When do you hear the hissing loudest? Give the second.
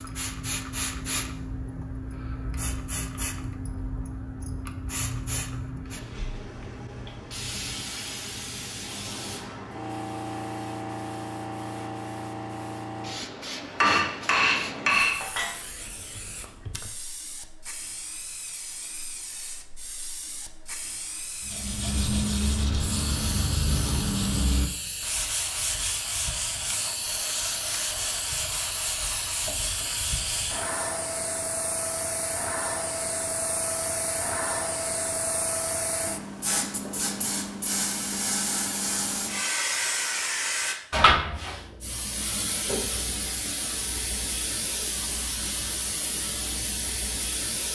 41 s.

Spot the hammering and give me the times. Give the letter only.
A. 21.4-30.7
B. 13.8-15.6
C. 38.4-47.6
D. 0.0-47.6
B.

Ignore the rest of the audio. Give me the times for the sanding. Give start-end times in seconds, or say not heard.
21.4-30.7.